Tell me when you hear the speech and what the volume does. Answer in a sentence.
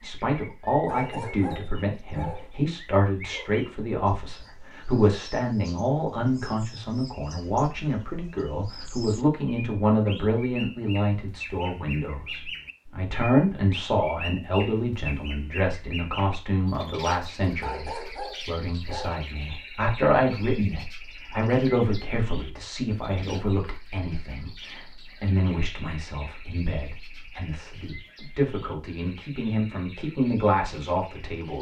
You can hear the speech from 0.0 to 31.5 s, at a steady volume.